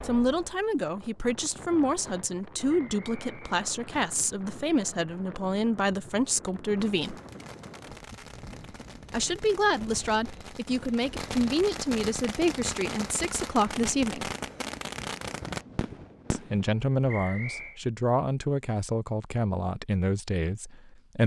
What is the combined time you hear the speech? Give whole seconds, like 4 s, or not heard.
17 s.